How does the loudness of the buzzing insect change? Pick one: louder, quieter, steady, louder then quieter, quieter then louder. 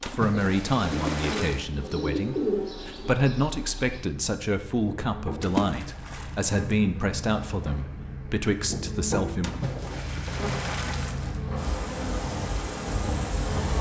louder.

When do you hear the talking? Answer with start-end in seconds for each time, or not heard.
0.1-9.5.